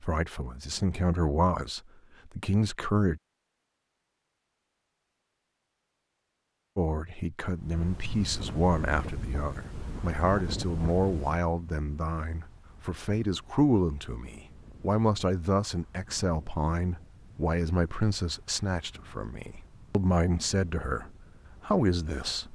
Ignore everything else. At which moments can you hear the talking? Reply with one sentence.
The talking can be heard from 0.0 to 3.2 s, from 6.8 to 21.1 s and from 21.6 to 22.4 s.